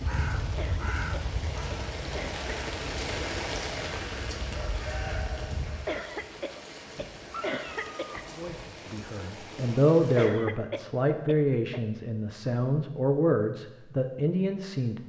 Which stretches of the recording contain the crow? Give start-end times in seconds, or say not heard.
0.0-5.9.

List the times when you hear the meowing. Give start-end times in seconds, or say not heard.
7.3-8.7.